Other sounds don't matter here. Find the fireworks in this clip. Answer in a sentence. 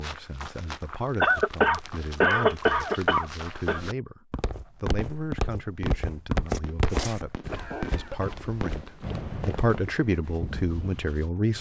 You can hear the fireworks from 5.0 to 9.8 s.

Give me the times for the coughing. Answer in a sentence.
The coughing can be heard from 1.2 to 3.8 s and from 6.9 to 8.4 s.